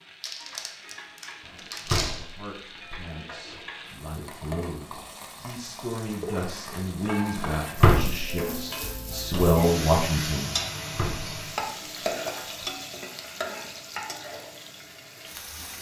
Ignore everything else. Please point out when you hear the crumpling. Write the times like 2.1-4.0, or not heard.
0.2-2.3.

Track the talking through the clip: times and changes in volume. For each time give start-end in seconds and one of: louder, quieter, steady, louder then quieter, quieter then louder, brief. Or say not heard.
2.0-10.6 louder.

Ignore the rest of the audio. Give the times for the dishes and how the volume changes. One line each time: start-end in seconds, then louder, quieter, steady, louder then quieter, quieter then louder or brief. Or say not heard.
not heard.